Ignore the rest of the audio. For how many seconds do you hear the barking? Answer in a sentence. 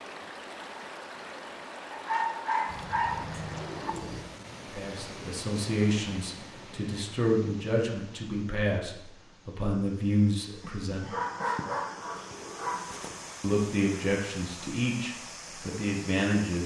You can hear the barking for 5 seconds altogether.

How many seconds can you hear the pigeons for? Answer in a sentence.
You can hear the pigeons for 3 seconds altogether.